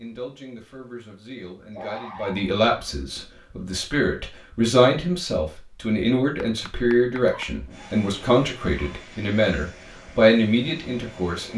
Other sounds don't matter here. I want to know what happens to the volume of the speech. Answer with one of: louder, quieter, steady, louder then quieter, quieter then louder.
louder.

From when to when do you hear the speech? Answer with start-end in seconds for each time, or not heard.
0.0-11.5.